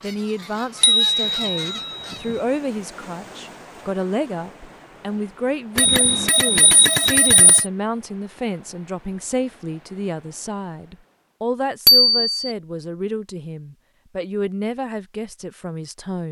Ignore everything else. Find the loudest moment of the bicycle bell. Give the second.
12 s.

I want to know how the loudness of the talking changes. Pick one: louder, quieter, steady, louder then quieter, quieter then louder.
steady.